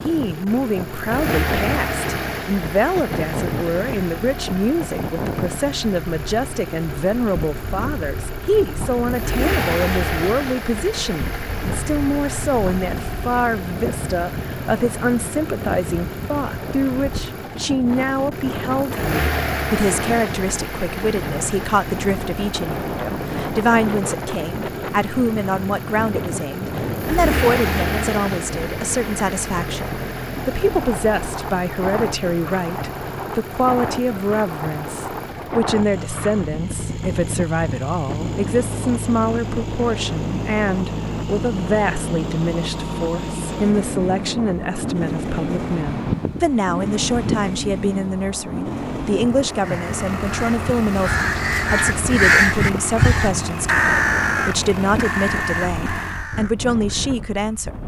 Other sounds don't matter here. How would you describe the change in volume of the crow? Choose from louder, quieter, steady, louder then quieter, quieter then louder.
louder then quieter.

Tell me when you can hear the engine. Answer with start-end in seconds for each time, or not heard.
0.0-56.2.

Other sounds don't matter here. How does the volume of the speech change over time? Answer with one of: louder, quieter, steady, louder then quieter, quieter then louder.
steady.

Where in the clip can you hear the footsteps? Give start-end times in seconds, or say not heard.
not heard.